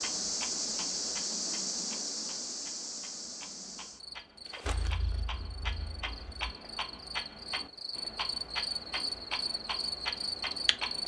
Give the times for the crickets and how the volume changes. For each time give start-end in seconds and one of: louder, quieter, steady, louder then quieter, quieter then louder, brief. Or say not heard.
0.0-11.0 quieter then louder.